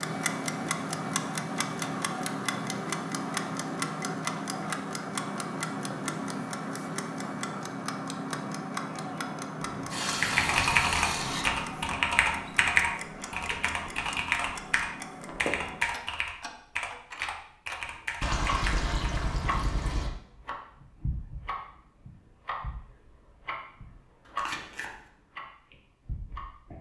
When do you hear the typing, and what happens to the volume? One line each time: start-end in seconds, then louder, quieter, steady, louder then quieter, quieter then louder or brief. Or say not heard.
10.2-18.9 quieter.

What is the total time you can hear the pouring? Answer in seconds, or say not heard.
4 s.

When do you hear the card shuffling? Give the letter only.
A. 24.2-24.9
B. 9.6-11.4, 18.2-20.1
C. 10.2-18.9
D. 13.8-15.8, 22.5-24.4
A.